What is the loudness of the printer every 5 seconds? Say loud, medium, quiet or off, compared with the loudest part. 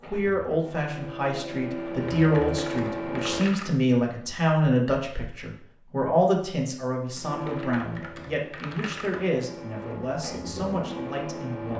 loud, medium, loud.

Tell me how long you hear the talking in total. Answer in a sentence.
You can hear the talking for 12 seconds altogether.